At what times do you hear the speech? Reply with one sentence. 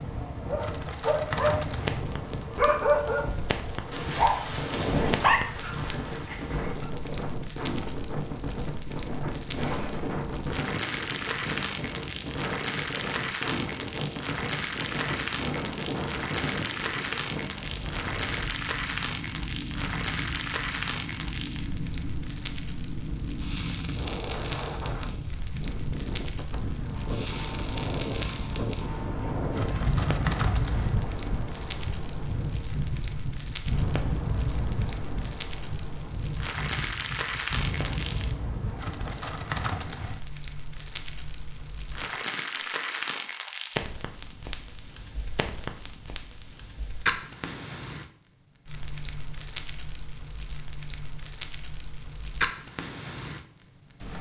The speech can't be heard in this clip.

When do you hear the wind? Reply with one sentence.
You can hear the wind from 0.0 to 40.1 s.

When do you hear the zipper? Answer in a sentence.
The zipper can be heard from 9.6 to 10.2 s.